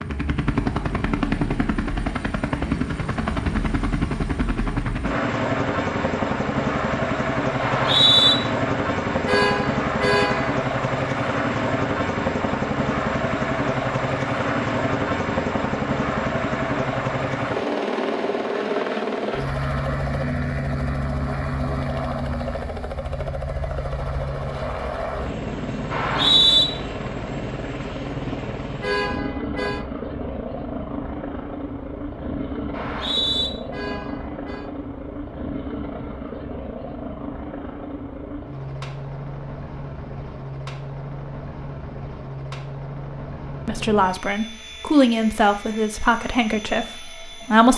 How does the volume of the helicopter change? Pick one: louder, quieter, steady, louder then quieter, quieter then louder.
quieter.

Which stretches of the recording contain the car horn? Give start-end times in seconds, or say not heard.
9.2-10.6, 28.8-29.9, 33.7-34.7.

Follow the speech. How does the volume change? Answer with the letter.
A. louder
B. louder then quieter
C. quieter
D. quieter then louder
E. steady
B.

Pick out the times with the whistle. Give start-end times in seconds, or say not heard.
7.6-8.3, 25.9-26.6, 32.7-33.5.